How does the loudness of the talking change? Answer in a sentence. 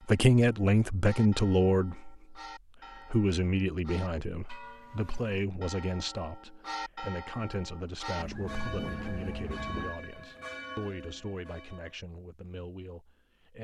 The loudness of the talking goes down.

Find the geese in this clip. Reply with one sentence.
You can hear the geese from 8.2 to 9.9 s.